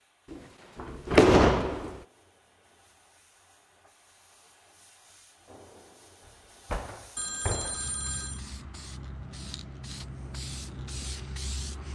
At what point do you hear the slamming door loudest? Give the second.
1 s.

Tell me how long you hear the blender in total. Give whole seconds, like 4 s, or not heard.
not heard.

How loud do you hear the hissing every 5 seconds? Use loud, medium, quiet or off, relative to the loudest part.
quiet, medium, loud.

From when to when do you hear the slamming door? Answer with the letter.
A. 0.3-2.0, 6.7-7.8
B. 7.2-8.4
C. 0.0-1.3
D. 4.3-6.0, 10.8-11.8
A.